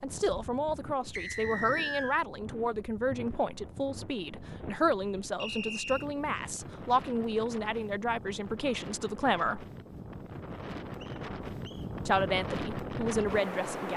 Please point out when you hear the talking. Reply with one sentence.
The talking can be heard from 0.0 to 9.7 s and from 12.1 to 13.9 s.